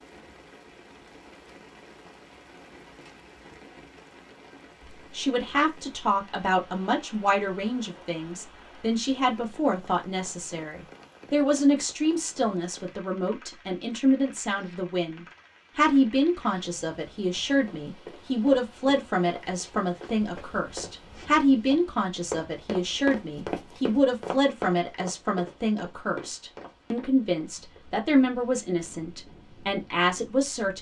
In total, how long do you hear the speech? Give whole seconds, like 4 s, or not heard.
26 s.